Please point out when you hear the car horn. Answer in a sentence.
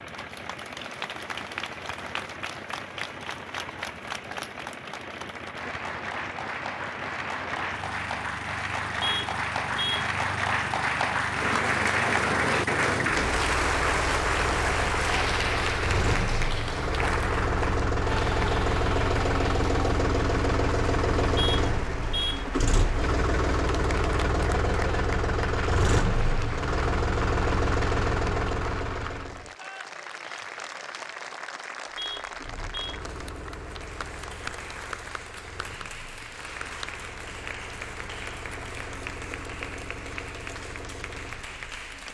The car horn can be heard from 9.0 to 10.1 s, from 21.4 to 22.4 s and from 31.9 to 33.0 s.